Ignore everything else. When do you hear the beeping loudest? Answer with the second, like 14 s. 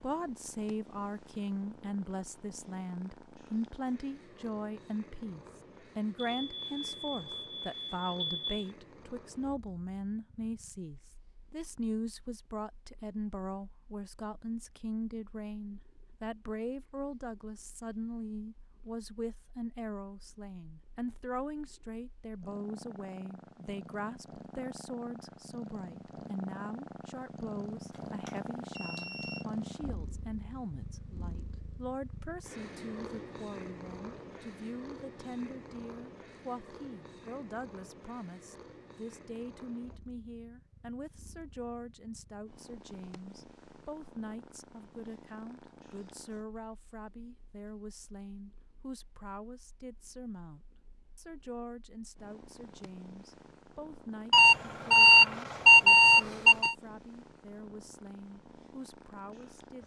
56 s.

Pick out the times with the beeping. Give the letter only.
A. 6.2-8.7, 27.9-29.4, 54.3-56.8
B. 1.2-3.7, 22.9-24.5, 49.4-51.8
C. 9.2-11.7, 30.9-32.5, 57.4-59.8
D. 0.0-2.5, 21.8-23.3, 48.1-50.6
A.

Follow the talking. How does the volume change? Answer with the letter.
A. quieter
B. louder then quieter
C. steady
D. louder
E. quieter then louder
A.